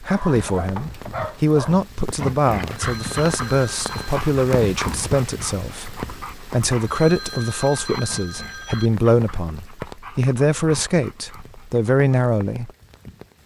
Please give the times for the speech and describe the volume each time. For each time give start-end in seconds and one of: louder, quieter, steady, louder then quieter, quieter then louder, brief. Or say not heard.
0.0-12.7 steady.